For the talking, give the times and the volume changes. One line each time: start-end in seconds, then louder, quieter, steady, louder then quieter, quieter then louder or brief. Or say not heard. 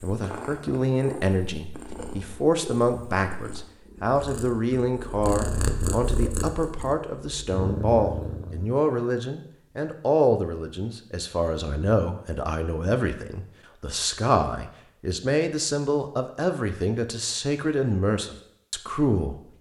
0.0-19.4 steady.